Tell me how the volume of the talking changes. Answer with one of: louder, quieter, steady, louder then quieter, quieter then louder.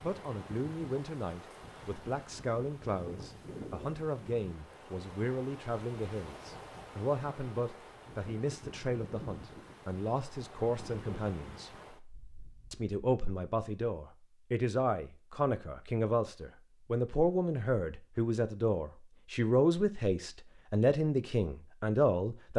louder.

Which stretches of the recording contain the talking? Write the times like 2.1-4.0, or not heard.
0.0-11.7, 12.7-22.5.